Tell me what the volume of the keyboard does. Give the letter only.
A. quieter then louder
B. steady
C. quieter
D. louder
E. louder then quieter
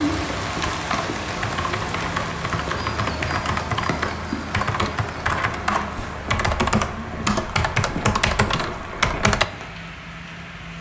D.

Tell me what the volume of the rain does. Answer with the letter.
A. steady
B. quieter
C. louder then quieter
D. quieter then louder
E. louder
B.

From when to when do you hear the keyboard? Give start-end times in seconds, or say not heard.
0.6-9.4.